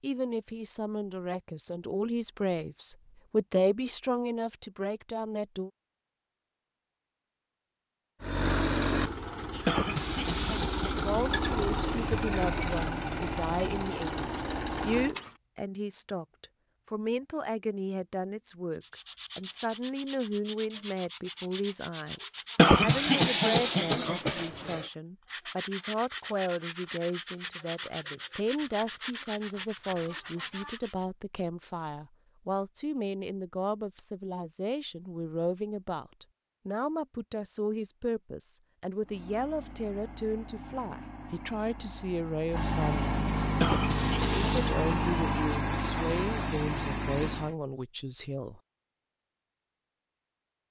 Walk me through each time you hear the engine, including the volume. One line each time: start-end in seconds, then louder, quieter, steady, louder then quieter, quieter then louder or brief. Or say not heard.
8.2-15.3 steady
39.0-47.5 louder.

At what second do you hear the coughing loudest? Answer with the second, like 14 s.
23 s.